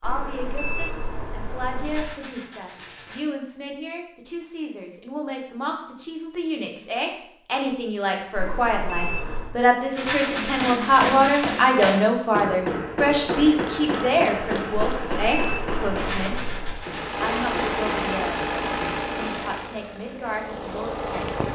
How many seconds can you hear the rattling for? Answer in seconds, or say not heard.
5 s.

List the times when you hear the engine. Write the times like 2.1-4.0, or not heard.
16.8-21.4.